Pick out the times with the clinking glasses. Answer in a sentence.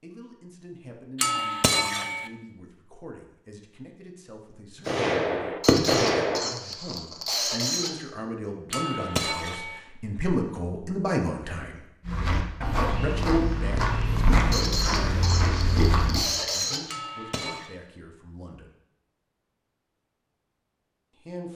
The clinking glasses can be heard from 1.1 to 2.3 s, from 8.7 to 9.8 s and from 16.9 to 17.7 s.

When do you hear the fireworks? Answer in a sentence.
You can hear the fireworks from 4.8 to 6.5 s.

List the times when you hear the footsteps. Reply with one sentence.
The footsteps can be heard from 12.1 to 16.2 s.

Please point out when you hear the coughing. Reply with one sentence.
The coughing can be heard from 5.6 to 8.0 s and from 14.5 to 16.9 s.